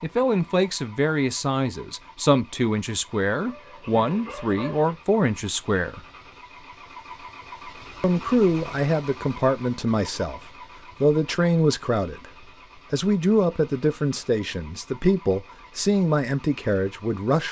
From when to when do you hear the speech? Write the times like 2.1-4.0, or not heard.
0.0-6.0, 8.0-10.4, 11.0-12.3, 12.9-17.4.